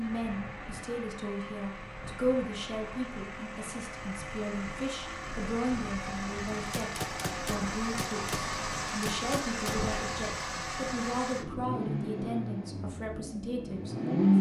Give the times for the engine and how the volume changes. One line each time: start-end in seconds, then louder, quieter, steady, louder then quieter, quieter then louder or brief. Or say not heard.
0.0-14.3 louder.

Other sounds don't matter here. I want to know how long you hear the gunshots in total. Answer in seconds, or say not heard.
3 s.